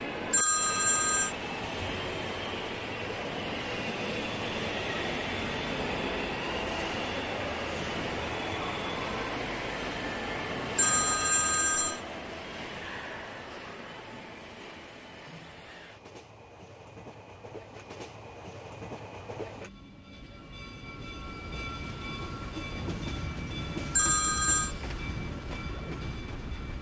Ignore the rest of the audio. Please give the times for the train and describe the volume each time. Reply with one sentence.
The train can be heard from 0.0 to 26.7 s, getting quieter then louder.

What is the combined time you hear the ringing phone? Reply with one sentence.
You can hear the ringing phone for 3 seconds altogether.